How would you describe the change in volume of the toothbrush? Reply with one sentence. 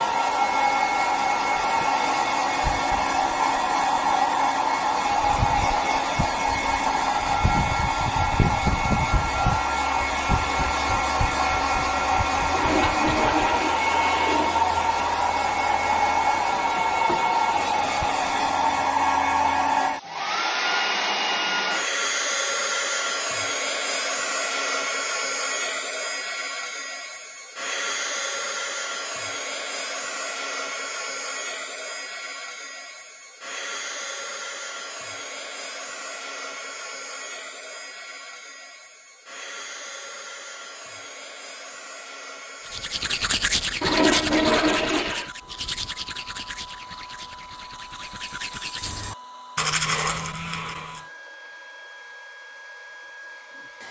The loudness of the toothbrush goes down, then up.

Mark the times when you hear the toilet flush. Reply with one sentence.
You can hear the toilet flush from 12.5 to 14.6 s and from 43.8 to 45.3 s.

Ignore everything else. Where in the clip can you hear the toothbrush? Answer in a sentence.
You can hear the toothbrush from 42.6 to 51.0 s.